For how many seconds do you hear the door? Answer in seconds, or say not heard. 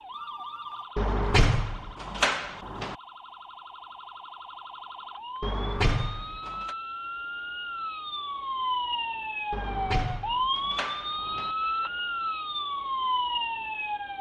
5 s.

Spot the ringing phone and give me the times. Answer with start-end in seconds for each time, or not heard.
0.1-0.9.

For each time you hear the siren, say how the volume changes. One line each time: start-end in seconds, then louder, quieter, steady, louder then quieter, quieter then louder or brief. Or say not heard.
0.0-14.1 louder.